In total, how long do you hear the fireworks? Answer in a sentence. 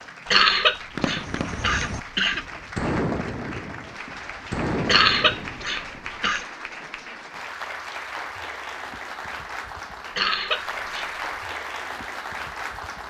You can hear the fireworks for 5 seconds altogether.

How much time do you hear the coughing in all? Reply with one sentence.
The coughing can be heard for 5 seconds in total.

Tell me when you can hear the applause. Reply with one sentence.
You can hear the applause from 0.0 to 13.0 s.